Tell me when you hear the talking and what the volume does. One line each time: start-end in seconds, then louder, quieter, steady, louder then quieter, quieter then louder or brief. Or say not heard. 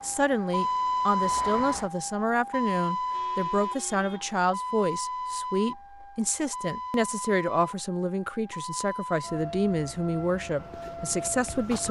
0.0-11.8 steady.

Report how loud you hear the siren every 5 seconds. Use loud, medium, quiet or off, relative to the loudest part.
loud, medium, medium.